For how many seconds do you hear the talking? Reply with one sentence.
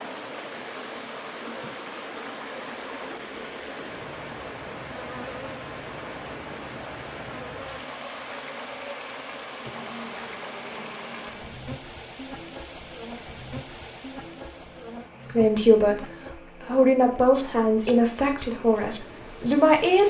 The talking can be heard for 5 seconds in total.